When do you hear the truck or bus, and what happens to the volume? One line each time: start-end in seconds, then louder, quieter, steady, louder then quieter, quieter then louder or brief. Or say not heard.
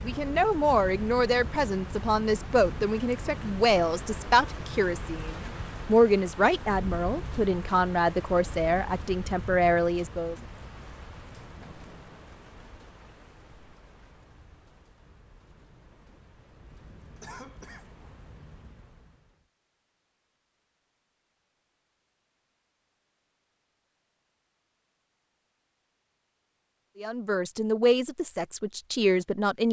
not heard.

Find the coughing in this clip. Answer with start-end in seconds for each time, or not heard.
17.2-18.1.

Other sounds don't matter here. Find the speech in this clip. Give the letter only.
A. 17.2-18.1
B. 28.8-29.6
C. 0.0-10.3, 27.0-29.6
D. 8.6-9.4
C.